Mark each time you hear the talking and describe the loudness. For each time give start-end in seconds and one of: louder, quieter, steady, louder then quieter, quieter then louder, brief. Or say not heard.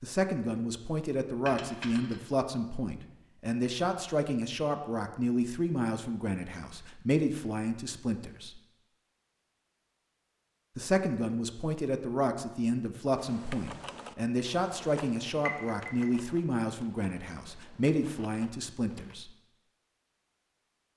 0.0-8.6 steady
10.8-19.3 steady.